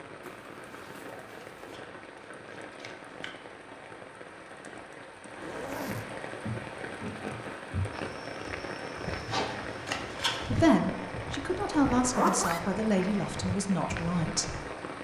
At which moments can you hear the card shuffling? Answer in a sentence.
The card shuffling can be heard from 0.8 to 3.4 s and from 9.2 to 10.7 s.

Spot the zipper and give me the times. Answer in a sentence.
The zipper can be heard from 0.2 to 1.8 s, from 5.4 to 6.0 s and from 12.1 to 12.6 s.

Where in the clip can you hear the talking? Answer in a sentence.
The talking can be heard from 10.5 to 14.6 s.